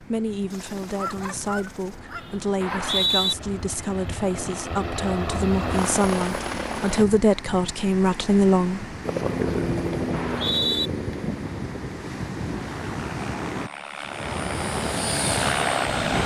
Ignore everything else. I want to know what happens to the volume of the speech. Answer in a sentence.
The loudness of the speech goes up.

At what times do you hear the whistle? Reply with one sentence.
The whistle can be heard from 2.6 to 3.4 s and from 10.1 to 10.9 s.